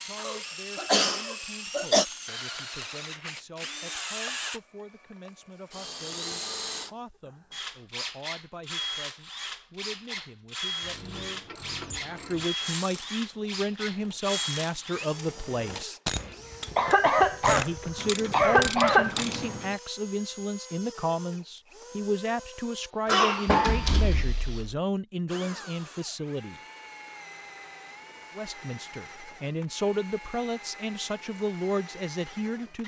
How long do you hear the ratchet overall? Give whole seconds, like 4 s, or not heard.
9 s.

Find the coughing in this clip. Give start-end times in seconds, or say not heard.
0.2-2.0, 16.7-19.2, 23.1-24.2.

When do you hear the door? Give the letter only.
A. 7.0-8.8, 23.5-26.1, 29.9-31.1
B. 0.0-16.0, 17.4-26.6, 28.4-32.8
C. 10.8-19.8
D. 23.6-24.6
D.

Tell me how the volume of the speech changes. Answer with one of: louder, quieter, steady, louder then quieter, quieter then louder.
louder.